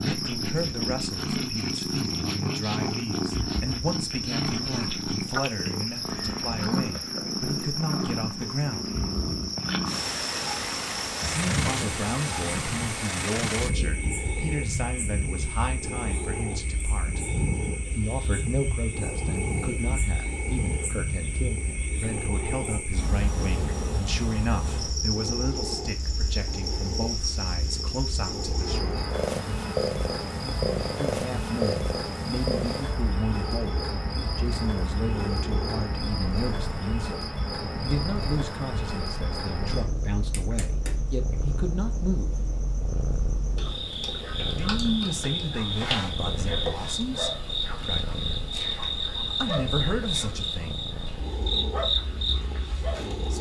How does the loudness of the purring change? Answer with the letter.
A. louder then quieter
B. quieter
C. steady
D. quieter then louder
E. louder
B.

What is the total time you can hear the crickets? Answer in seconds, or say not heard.
53 s.